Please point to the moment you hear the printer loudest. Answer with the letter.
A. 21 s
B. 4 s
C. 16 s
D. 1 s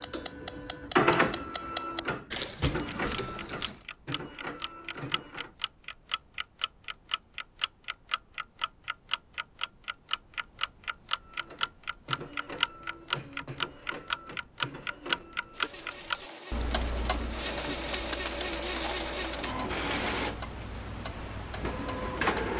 D.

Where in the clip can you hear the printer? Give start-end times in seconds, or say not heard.
0.0-5.5, 11.2-22.5.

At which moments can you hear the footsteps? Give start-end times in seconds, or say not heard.
not heard.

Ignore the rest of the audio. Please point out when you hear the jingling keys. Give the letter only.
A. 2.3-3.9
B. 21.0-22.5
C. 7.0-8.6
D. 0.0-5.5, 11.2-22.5
A.